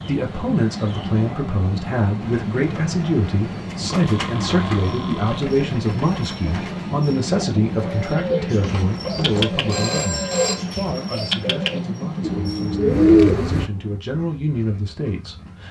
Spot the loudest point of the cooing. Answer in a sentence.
The loudest moment of the cooing is at 13 seconds.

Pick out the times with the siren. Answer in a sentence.
You can't hear the siren here.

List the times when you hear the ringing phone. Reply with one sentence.
The ringing phone can be heard from 3.9 to 5.4 s and from 8.6 to 10.6 s.